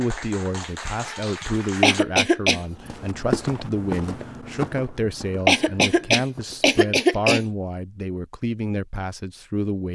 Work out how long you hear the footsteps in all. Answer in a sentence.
You can hear the footsteps for 4 seconds altogether.